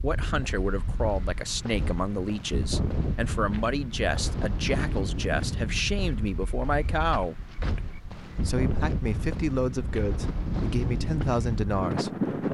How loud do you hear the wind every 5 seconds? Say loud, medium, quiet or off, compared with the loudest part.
medium, medium, loud.